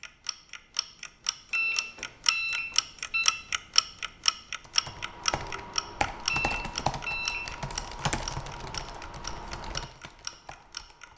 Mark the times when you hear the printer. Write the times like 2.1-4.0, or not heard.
not heard.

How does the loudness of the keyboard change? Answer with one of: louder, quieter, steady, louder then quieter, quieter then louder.
quieter.